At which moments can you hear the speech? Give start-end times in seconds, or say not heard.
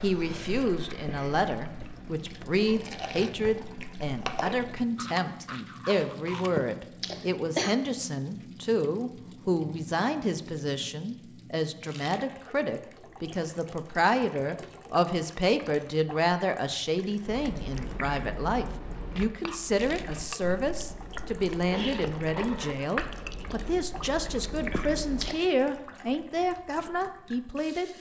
0.0-27.9.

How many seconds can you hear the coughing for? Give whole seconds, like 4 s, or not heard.
2 s.